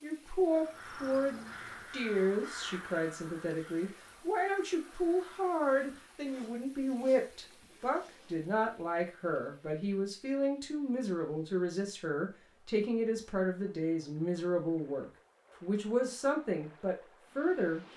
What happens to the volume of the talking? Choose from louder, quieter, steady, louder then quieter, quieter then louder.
steady.